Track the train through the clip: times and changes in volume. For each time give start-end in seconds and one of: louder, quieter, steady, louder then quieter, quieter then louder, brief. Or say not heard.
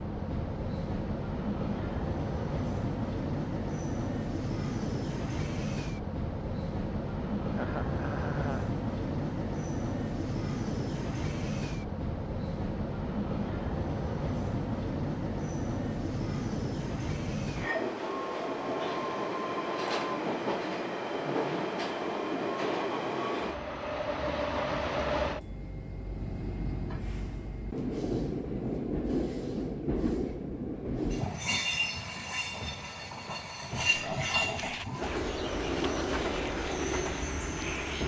0.0-38.0 steady.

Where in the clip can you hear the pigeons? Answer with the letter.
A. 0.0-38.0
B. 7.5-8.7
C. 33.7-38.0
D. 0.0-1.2
C.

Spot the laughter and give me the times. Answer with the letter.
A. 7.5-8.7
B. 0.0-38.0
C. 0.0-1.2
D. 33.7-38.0
A.